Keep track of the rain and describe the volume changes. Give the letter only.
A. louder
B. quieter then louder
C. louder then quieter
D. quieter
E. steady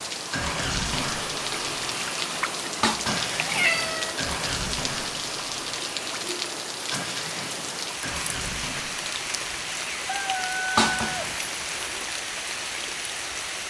E.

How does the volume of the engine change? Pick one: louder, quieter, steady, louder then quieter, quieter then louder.
quieter.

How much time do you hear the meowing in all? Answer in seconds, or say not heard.
2 s.